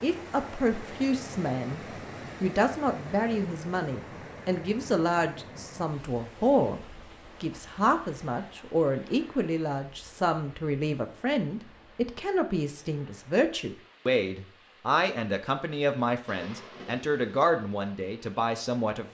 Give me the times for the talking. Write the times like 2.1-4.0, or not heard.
0.0-1.8, 2.4-6.8, 7.4-19.0.